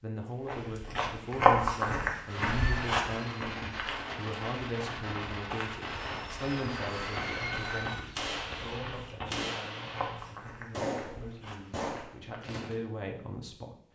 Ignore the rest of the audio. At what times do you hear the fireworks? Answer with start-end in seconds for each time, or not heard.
2.2-12.8.